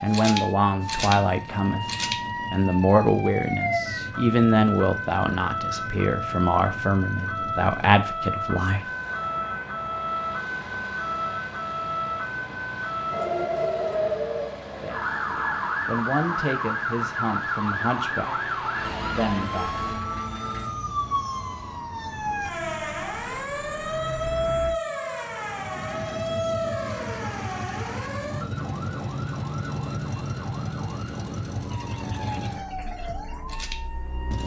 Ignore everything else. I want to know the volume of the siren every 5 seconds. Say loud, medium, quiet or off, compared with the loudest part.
loud, loud, loud, loud, loud, loud, medium.